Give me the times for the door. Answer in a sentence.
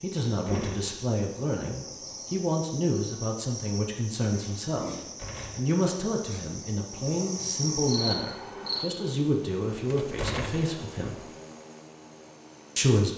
You can hear the door from 0.2 to 1.0 s, from 5.0 to 5.8 s and from 9.9 to 10.7 s.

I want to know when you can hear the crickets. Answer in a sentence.
The crickets can be heard from 0.0 to 8.9 s.